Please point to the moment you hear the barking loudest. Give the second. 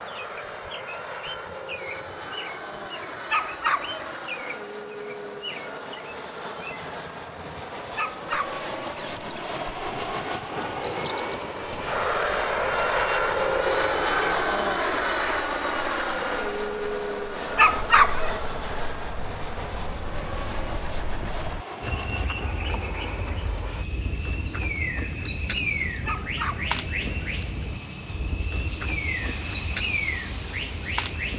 18 s.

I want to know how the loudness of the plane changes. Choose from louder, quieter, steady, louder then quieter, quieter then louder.
louder then quieter.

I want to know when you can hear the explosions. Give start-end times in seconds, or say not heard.
not heard.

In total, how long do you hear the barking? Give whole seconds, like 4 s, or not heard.
3 s.